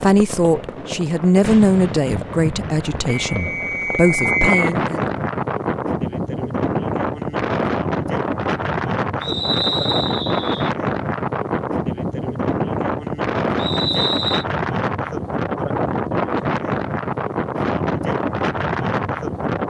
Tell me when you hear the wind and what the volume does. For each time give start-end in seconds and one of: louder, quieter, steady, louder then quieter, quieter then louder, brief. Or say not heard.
0.1-19.6 louder.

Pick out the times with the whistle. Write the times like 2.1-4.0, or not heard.
3.2-4.6, 9.2-10.7, 13.6-14.4.